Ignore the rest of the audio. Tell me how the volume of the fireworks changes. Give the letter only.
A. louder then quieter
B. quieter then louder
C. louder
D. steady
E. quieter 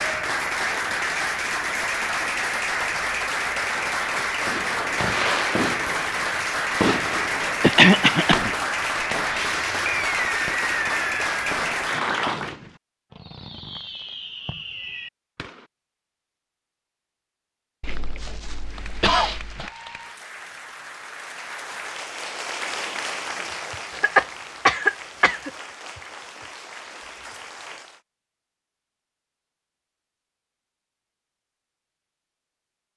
E.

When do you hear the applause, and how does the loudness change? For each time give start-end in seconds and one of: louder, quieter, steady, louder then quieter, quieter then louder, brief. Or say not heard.
0.0-12.6 steady
18.6-28.0 louder then quieter.